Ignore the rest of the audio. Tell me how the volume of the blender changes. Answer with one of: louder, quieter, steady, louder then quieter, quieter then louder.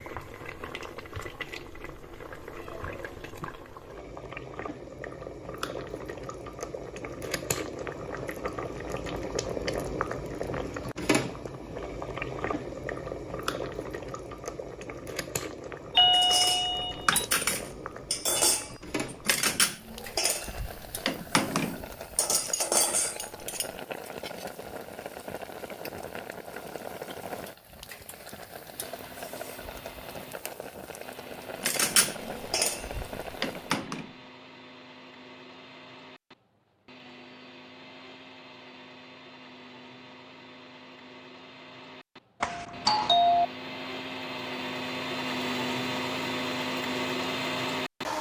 louder.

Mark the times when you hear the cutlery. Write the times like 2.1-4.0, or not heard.
16.1-24.5, 31.6-34.1.